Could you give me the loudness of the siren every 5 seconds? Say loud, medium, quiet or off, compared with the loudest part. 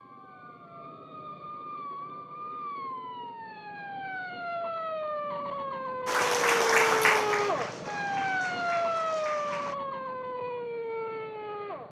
medium, loud, medium.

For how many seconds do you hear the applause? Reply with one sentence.
The applause can be heard for 4 seconds in total.